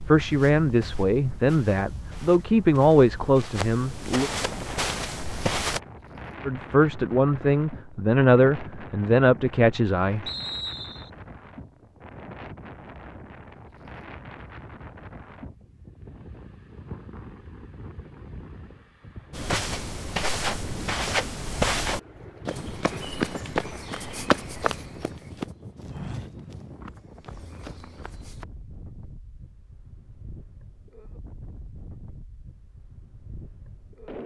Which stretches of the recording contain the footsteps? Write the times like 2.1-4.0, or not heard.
0.0-5.8, 19.3-28.4.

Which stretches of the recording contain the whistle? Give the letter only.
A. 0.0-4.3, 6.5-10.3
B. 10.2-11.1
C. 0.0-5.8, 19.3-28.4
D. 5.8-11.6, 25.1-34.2
B.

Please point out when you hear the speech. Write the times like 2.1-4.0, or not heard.
0.0-4.3, 6.5-10.3.